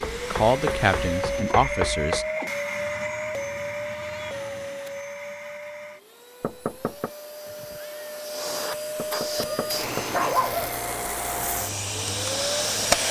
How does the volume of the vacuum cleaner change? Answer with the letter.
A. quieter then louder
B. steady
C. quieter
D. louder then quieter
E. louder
A.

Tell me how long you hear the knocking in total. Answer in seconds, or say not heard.
4 s.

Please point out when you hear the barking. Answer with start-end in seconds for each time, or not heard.
9.3-10.8.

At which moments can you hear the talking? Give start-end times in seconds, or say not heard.
0.3-2.2.